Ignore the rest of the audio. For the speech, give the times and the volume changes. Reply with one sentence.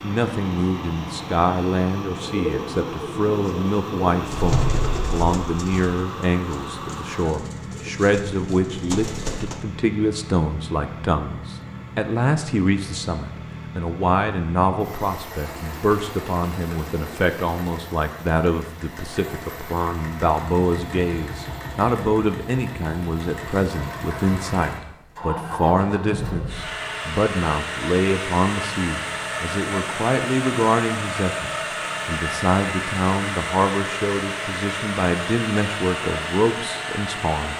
The speech can be heard from 0.0 to 37.5 s, at a steady volume.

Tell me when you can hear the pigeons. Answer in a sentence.
The pigeons can be heard from 2.2 to 9.6 s.